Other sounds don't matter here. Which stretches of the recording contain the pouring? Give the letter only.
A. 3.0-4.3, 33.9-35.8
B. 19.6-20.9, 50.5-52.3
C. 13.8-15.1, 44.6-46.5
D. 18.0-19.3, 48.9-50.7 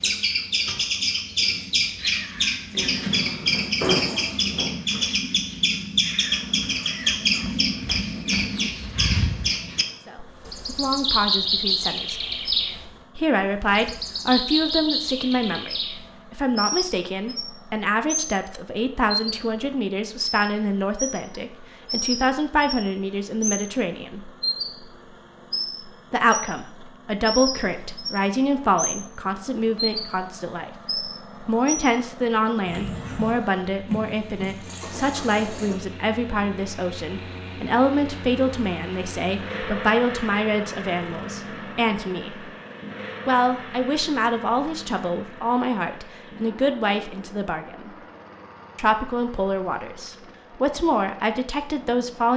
A.